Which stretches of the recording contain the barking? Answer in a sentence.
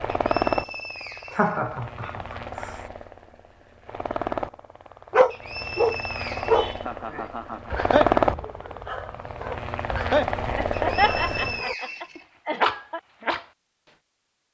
You can hear the barking from 5.1 to 13.4 s.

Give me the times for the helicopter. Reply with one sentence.
You can hear the helicopter from 0.0 to 11.7 s.